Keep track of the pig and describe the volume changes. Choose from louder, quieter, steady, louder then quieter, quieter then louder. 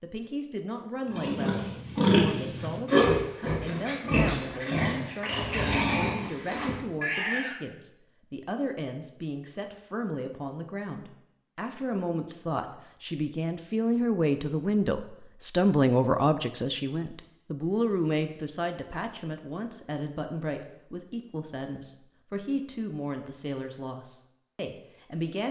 quieter.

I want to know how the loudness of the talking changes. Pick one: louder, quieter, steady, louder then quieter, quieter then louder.
louder then quieter.